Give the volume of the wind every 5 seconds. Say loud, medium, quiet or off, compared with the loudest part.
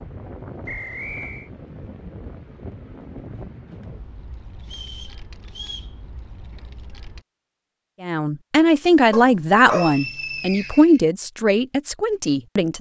loud, medium, off.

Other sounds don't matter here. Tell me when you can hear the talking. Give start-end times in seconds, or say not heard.
8.0-12.7.